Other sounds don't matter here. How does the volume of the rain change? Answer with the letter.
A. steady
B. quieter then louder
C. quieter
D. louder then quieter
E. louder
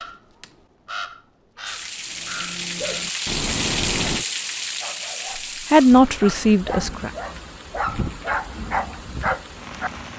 C.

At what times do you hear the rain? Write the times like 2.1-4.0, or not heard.
1.6-10.1.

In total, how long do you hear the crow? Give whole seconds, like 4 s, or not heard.
4 s.